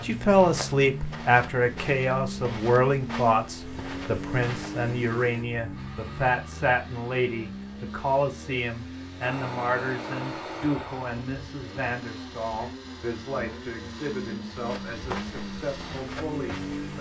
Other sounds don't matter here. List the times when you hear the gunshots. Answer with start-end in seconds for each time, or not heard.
9.2-11.2.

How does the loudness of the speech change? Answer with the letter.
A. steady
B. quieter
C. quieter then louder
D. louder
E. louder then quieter
B.